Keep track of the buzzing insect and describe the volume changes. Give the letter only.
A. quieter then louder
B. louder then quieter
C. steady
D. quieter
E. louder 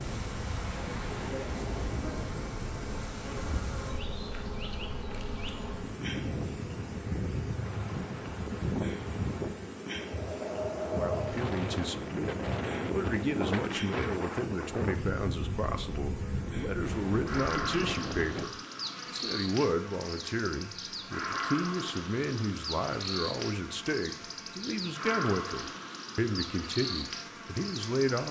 C.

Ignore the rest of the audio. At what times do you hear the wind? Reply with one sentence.
The wind can be heard from 0.0 to 18.5 s.